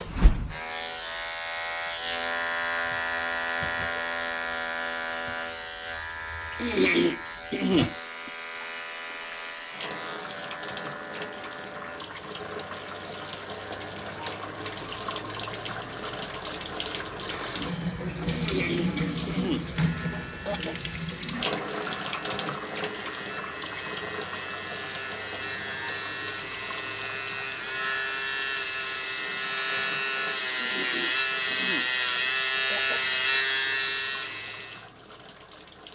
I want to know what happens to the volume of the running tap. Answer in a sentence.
The loudness of the running tap goes up, then down.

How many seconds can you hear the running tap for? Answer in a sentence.
The running tap can be heard for 36 seconds in total.